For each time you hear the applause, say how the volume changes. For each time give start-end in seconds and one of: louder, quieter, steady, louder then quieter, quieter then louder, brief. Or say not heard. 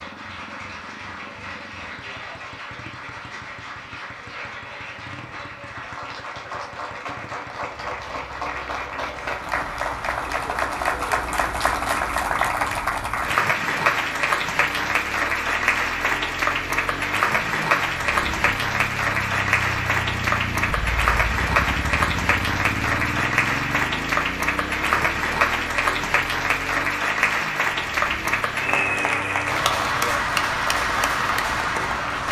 0.0-32.2 louder.